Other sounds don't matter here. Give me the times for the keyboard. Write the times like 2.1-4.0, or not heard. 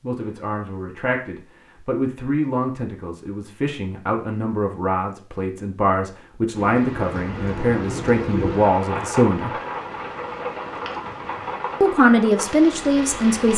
not heard.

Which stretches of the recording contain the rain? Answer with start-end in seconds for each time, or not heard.
6.5-13.5.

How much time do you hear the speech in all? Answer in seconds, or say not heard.
11 s.